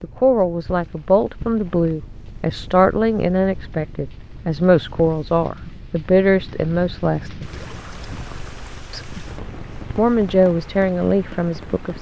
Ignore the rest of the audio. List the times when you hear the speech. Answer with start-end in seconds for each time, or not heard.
0.0-7.5, 8.9-11.9.